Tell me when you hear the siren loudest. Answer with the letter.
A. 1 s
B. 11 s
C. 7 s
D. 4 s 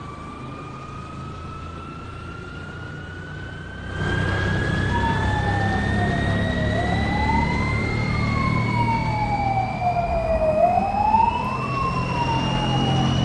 B.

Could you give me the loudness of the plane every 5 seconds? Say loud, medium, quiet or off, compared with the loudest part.
medium, loud, loud.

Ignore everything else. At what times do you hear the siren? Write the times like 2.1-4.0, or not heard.
4.8-12.9.